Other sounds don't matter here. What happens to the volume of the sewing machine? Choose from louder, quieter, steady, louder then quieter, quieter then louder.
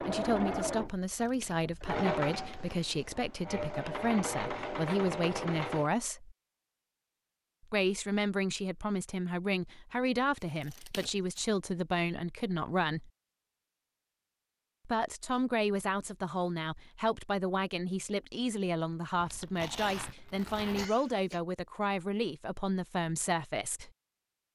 quieter then louder.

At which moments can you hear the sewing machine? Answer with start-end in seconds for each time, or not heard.
0.0-5.9.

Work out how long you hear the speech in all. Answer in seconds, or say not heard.
21 s.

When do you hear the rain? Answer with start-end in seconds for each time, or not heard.
not heard.